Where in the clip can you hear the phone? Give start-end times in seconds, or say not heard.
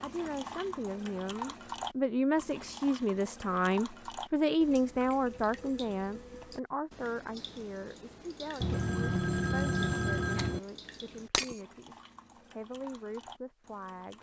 8.6-10.6.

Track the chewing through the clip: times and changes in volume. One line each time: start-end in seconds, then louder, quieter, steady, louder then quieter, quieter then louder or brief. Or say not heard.
not heard.